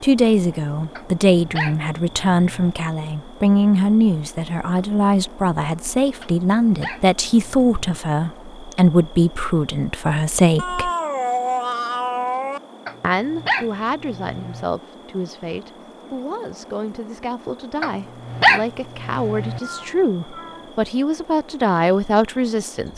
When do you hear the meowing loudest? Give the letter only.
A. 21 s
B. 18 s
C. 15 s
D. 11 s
D.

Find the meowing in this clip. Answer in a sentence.
You can hear the meowing from 10.6 to 12.6 s and from 19.6 to 20.8 s.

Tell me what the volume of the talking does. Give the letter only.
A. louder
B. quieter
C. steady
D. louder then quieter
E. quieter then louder
E.